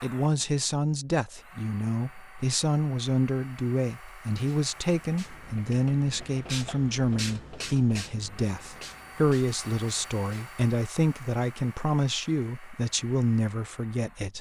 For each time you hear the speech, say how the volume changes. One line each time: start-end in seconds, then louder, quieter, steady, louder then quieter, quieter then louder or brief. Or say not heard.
0.0-14.3 steady.